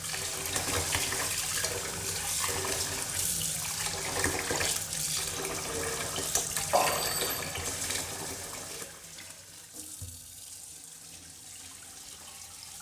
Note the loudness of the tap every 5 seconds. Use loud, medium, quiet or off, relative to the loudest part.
loud, loud, quiet.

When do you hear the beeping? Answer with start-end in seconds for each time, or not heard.
6.7-7.5.